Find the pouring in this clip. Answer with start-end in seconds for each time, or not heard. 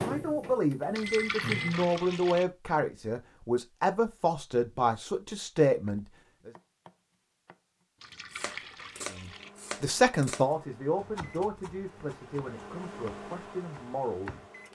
0.9-2.5, 8.0-9.5.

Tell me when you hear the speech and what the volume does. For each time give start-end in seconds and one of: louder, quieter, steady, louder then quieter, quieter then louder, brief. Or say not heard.
0.0-6.5 steady
9.2-14.3 quieter.